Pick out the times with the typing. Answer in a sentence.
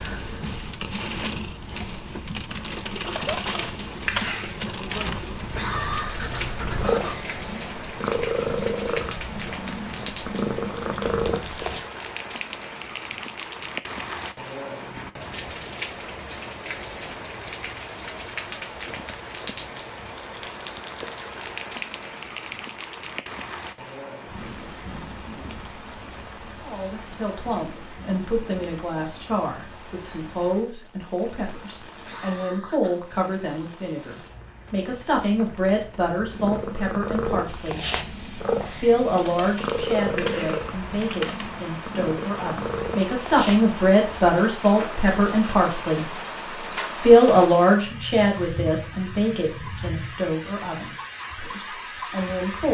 The typing can be heard from 3.0 to 5.2 s and from 39.1 to 41.5 s.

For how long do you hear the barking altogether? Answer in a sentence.
You can't hear the barking here.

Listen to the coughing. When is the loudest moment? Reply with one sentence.
The volume of the coughing peaks at 6 seconds.